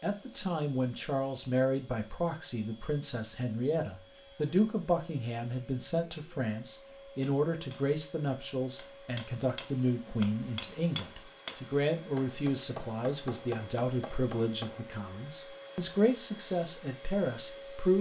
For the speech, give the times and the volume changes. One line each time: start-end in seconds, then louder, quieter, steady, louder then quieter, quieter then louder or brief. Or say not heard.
0.0-17.9 steady.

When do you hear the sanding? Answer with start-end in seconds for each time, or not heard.
not heard.